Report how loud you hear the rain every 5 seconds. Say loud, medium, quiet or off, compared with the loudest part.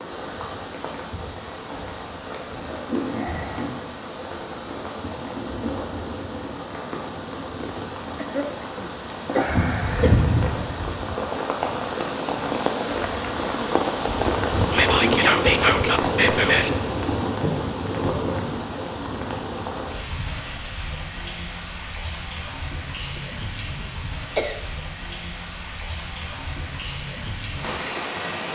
medium, medium, loud, loud, medium, medium.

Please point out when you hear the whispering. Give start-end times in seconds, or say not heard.
14.7-16.7.